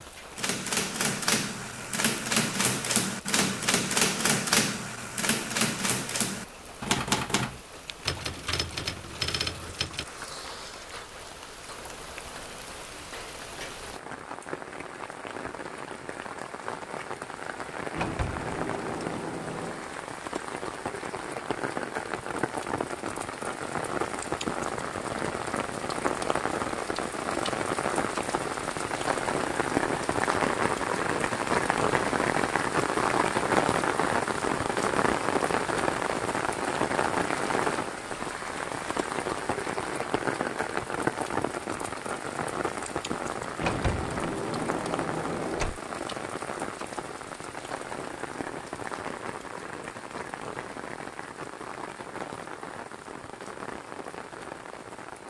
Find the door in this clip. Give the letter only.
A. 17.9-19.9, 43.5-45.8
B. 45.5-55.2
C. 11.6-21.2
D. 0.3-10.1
A.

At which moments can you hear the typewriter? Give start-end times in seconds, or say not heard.
0.3-10.1.